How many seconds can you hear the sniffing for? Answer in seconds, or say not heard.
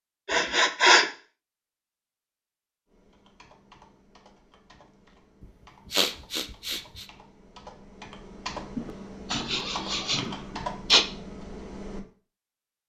5 s.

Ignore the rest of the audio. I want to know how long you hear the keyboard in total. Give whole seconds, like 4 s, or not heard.
9 s.